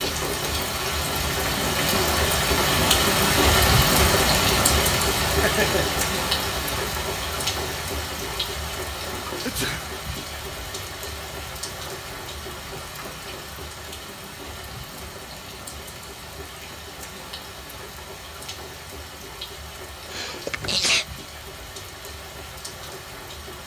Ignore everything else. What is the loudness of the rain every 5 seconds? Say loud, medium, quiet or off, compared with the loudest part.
loud, medium, quiet, quiet, quiet.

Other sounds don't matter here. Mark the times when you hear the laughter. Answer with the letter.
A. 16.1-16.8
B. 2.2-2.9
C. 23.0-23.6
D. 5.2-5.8
D.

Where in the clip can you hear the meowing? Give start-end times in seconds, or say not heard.
not heard.